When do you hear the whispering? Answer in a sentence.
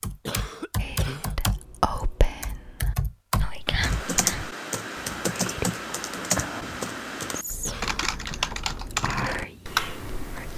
The whispering can be heard from 0.8 to 10.4 s.